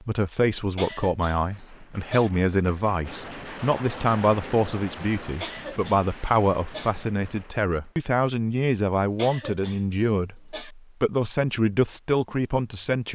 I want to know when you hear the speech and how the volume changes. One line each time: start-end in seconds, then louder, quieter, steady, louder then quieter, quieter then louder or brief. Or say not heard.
0.0-13.1 steady.